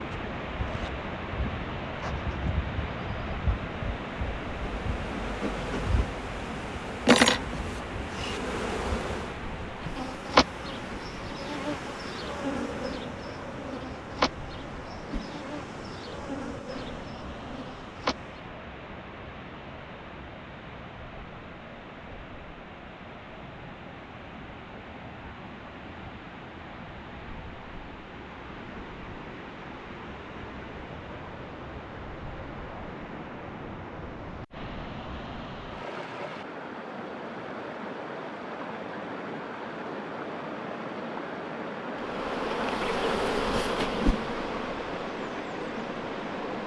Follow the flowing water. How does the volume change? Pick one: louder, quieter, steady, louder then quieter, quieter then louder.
quieter then louder.